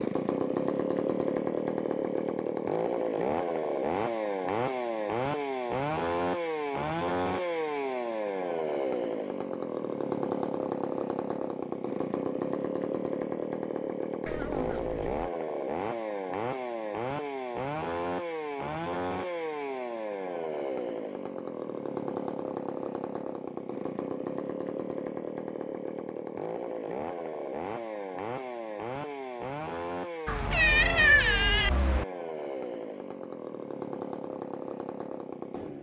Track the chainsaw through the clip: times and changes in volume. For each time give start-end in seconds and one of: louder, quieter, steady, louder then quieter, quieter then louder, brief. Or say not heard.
0.0-35.7 quieter.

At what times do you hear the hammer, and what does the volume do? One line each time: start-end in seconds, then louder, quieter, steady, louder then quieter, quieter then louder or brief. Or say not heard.
not heard.